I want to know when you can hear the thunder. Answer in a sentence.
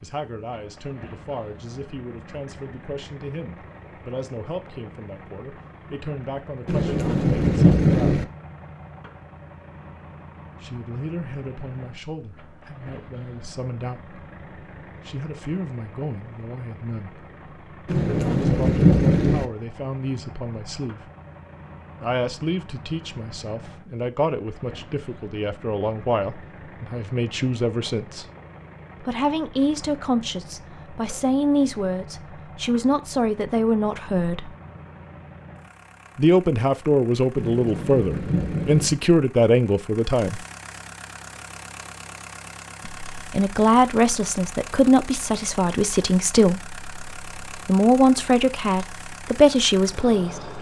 The thunder can be heard from 6.7 to 8.2 s, from 17.9 to 19.4 s and from 37.4 to 39.0 s.